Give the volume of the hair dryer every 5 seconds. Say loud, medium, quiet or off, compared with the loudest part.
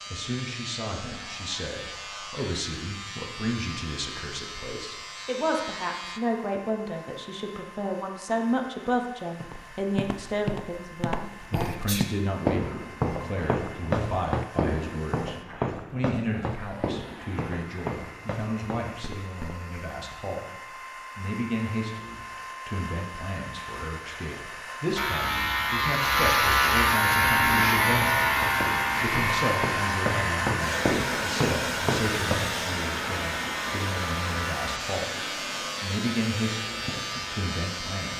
quiet, quiet, quiet, quiet, medium, loud, loud, medium.